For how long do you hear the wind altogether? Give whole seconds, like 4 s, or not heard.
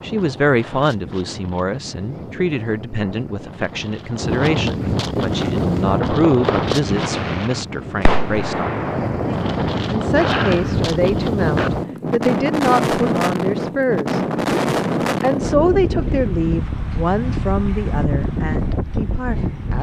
20 s.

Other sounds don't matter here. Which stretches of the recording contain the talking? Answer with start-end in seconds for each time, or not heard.
0.0-8.8, 9.9-14.2, 15.2-19.7.